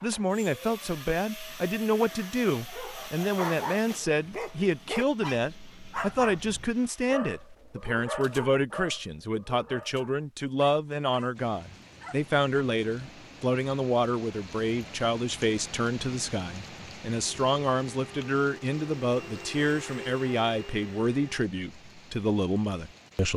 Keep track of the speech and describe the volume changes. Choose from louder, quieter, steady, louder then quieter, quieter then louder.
steady.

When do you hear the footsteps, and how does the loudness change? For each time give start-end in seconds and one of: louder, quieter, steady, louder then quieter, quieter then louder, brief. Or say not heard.
not heard.